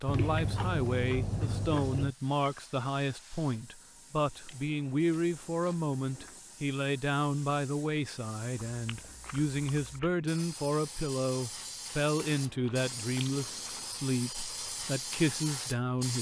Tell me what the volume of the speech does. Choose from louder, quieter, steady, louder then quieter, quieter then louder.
steady.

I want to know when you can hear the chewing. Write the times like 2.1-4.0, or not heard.
0.1-2.1, 4.5-6.4, 8.7-10.1, 12.2-13.8.